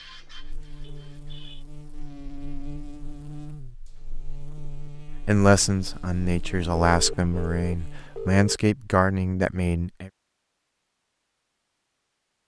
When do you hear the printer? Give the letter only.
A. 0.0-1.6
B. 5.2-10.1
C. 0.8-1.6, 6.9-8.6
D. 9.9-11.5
A.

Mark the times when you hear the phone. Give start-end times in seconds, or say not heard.
0.8-1.6, 6.9-8.6.